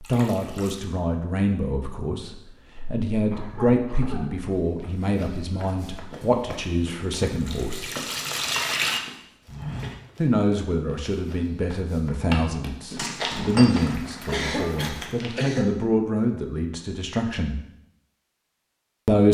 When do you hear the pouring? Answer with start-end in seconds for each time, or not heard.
0.0-0.9, 7.2-9.0, 13.3-15.2.